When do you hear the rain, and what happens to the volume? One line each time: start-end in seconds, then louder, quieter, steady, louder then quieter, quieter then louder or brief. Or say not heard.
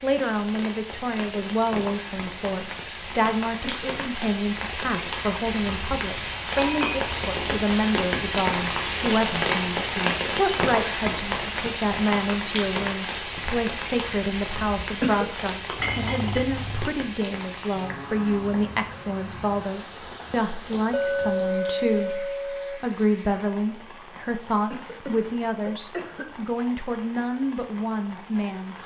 0.0-28.8 louder then quieter.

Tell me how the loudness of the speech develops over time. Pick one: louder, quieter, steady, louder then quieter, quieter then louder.
steady.